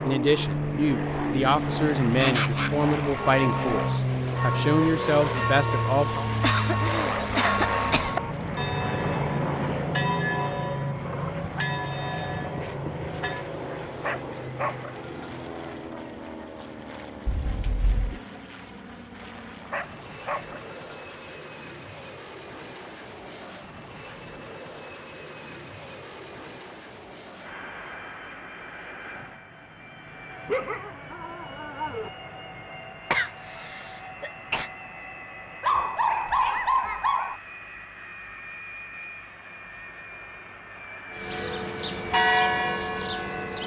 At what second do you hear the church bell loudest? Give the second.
42 s.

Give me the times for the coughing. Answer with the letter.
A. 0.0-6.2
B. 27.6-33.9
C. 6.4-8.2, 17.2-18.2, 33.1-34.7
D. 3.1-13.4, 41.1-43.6
C.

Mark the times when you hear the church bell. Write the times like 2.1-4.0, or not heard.
3.1-13.4, 41.1-43.6.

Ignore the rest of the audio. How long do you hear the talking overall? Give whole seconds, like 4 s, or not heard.
6 s.